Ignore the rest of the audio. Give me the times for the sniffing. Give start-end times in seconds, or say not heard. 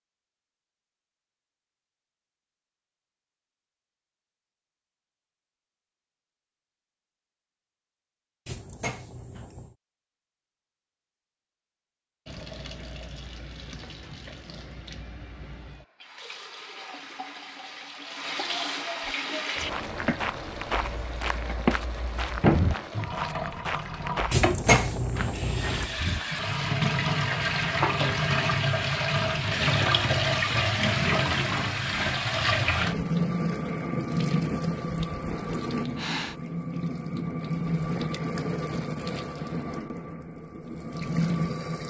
35.5-36.4.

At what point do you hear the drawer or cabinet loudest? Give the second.
25 s.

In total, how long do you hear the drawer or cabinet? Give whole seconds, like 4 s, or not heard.
3 s.